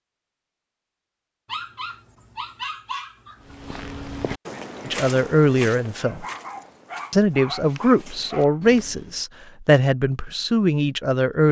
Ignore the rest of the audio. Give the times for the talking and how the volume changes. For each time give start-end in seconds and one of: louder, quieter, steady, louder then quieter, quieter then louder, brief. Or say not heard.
4.8-6.2 brief
7.1-11.4 quieter then louder.